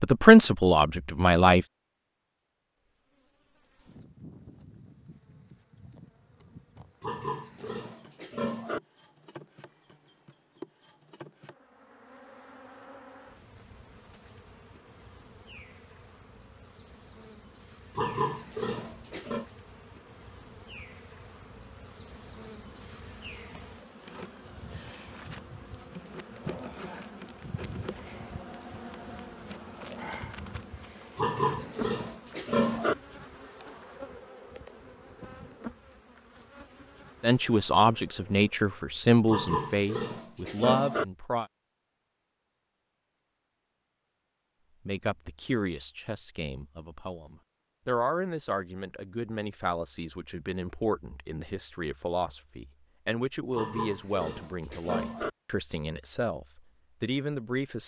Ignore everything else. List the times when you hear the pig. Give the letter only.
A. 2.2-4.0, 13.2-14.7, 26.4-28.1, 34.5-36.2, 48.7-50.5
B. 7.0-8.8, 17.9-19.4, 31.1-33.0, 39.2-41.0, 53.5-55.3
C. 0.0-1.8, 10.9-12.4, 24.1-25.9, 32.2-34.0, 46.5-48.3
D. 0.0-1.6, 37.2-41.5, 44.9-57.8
B.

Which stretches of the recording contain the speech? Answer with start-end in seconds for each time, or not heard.
0.0-1.6, 37.2-41.5, 44.9-57.8.